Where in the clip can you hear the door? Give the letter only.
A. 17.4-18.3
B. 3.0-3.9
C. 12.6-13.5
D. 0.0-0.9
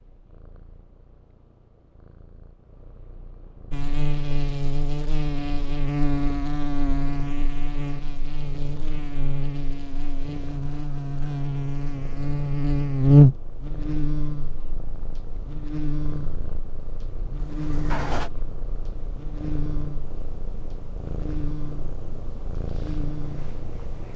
A.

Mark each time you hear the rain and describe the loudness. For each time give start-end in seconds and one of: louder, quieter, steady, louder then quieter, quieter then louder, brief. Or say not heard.
not heard.